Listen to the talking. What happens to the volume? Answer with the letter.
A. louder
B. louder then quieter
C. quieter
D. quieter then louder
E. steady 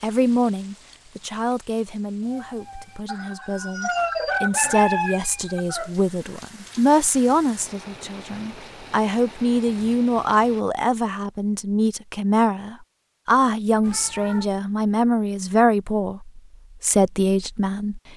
A.